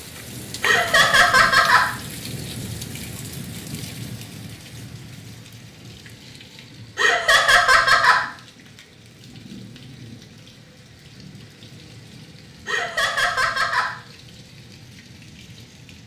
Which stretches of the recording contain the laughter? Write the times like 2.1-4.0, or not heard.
0.6-1.9, 7.0-8.2, 12.7-13.9.